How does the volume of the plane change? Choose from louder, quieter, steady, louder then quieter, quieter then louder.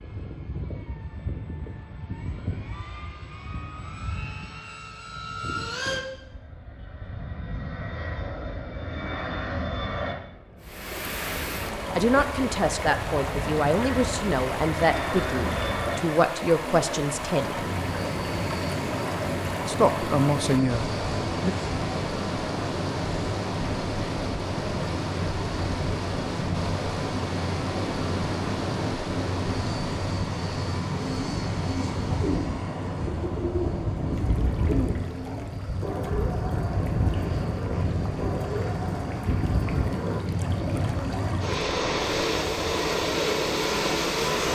louder.